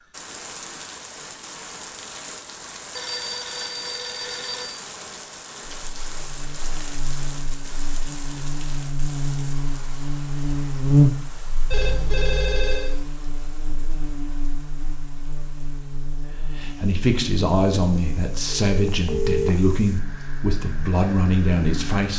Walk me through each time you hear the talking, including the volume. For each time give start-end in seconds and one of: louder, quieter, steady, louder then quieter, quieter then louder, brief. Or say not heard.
16.1-22.1 steady.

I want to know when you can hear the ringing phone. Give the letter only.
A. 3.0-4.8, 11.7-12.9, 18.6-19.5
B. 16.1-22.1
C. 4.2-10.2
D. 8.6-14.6
A.